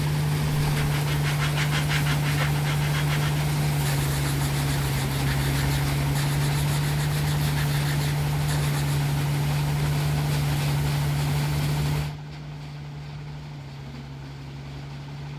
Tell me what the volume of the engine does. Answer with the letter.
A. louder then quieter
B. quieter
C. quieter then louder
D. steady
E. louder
B.